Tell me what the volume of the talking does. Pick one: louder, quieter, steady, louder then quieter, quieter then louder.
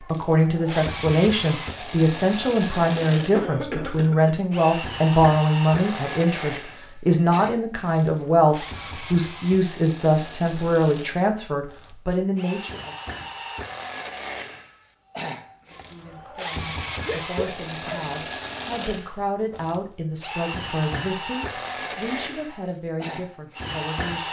quieter.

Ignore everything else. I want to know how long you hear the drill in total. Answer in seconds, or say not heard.
24 s.